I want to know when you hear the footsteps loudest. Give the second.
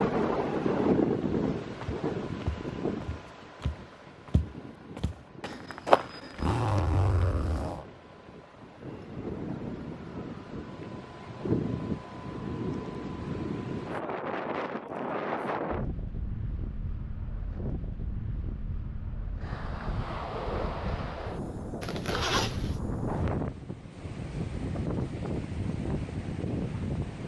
6 s.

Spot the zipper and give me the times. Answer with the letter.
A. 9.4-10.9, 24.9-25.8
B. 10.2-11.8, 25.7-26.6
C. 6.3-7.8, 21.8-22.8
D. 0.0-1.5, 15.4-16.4
C.